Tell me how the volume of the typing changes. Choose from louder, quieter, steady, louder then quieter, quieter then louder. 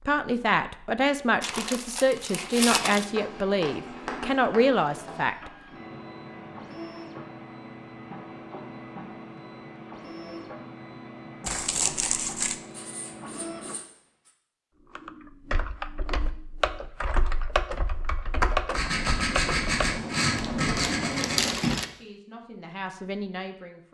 louder then quieter.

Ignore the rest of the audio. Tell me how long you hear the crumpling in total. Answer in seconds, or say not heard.
4 s.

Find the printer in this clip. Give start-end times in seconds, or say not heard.
2.1-13.8.